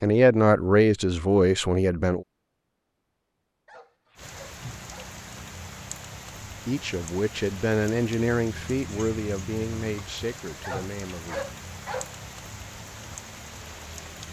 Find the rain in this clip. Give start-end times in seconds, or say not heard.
4.2-14.2.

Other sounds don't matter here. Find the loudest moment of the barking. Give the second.
11 s.